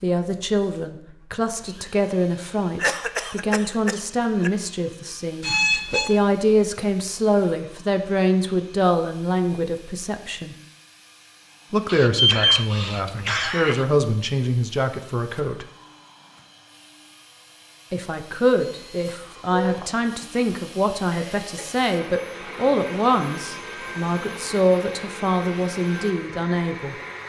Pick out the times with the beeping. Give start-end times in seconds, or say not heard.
5.4-6.2, 12.2-13.4, 18.6-19.9.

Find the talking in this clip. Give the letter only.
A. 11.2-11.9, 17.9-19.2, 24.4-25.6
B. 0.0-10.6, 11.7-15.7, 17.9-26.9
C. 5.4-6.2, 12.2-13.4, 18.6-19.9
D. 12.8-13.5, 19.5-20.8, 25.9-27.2
B.